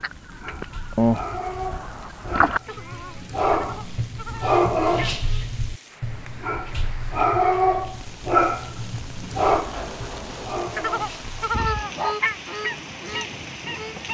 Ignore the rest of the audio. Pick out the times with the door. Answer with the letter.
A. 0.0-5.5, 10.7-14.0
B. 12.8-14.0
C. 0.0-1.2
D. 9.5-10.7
D.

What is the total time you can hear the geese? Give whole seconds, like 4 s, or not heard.
9 s.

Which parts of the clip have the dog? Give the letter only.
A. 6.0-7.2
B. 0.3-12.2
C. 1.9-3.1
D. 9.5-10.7
B.